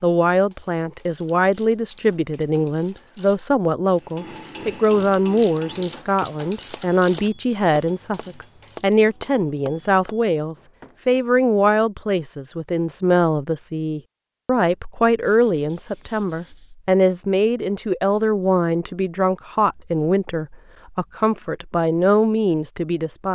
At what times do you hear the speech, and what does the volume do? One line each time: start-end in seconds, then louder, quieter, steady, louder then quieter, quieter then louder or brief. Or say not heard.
0.0-23.2 steady.